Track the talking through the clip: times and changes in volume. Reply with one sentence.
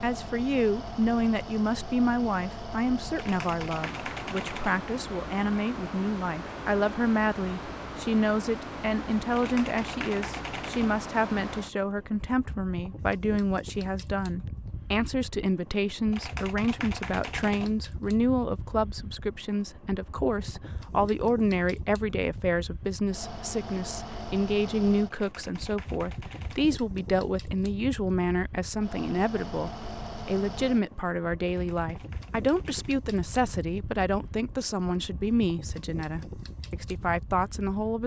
The talking can be heard from 0.0 to 38.0 s, at a steady volume.